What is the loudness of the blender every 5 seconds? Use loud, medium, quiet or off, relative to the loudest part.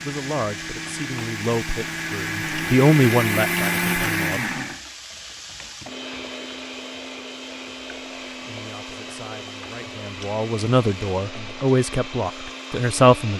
loud, medium, medium.